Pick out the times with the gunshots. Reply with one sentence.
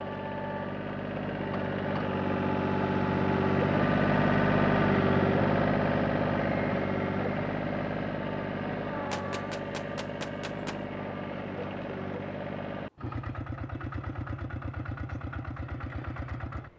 The gunshots can be heard from 9.1 to 10.8 s.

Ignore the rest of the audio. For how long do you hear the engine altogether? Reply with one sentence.
The engine can be heard for 17 seconds in total.